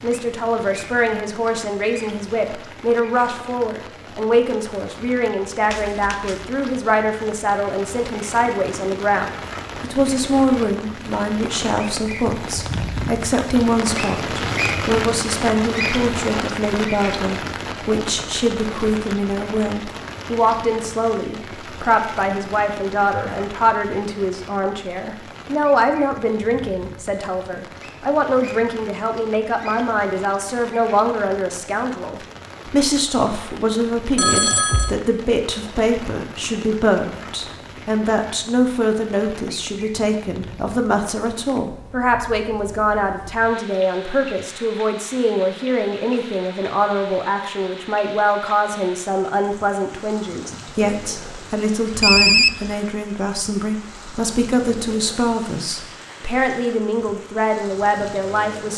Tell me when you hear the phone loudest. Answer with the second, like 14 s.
52 s.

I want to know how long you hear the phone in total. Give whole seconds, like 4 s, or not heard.
2 s.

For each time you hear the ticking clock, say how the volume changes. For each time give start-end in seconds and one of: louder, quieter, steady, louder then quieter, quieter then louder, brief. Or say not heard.
not heard.